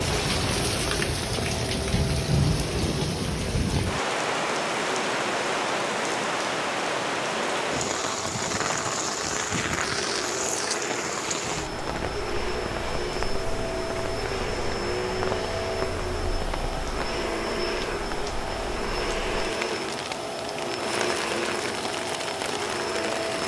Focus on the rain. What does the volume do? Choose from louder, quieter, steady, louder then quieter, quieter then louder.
quieter.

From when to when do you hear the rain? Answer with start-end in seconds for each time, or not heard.
0.0-23.4.